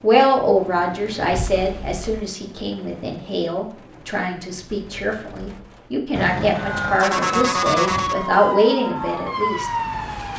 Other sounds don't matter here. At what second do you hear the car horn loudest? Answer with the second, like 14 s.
7 s.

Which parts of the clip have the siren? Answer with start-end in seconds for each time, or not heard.
6.5-10.3.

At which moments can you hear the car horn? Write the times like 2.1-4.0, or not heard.
1.3-2.2, 6.1-8.2.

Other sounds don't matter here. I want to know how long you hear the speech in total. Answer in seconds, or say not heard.
10 s.